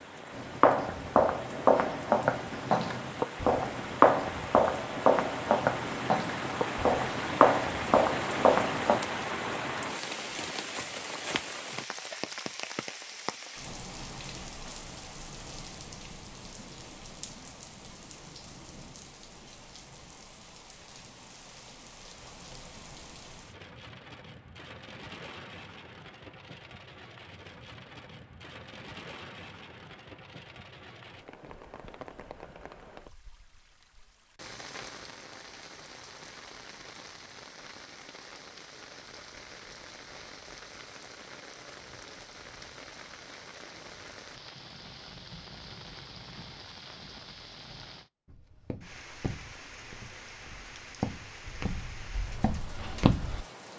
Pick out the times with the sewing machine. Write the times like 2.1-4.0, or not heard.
not heard.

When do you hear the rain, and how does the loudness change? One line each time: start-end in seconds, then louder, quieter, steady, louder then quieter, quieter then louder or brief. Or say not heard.
0.0-53.7 quieter.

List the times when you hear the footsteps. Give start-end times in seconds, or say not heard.
0.3-9.0, 48.2-53.5.